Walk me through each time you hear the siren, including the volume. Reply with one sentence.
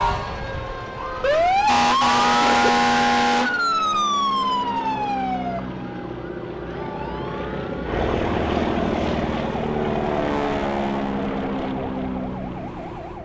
You can hear the siren from 0.0 to 13.1 s, getting quieter.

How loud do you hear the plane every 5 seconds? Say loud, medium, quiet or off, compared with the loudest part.
medium, loud, loud.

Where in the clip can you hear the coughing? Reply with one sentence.
The coughing can be heard from 2.4 to 2.9 s.